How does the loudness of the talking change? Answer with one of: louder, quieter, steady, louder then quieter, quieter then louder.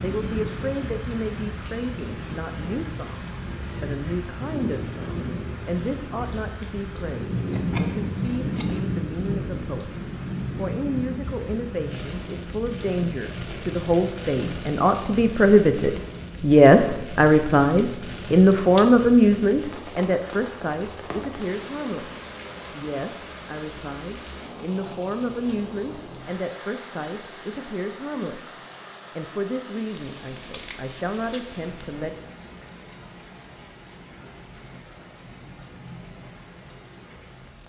louder then quieter.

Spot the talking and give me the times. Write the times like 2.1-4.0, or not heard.
0.0-9.9, 10.6-32.1.